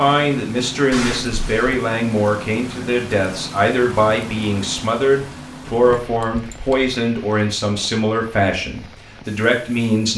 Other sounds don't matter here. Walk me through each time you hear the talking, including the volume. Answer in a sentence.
You can hear the talking from 0.0 to 10.1 s, at a steady volume.